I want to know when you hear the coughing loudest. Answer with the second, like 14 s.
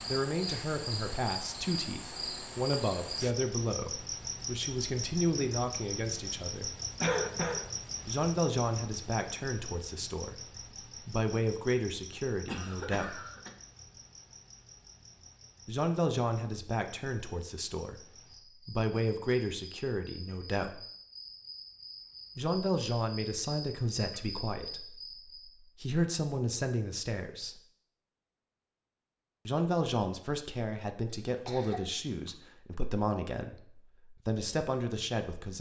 7 s.